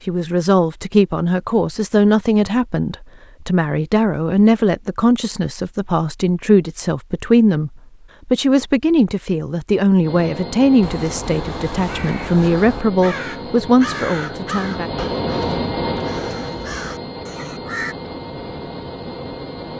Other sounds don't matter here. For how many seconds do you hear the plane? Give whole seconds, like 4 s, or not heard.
10 s.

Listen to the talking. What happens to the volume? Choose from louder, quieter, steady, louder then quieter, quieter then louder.
steady.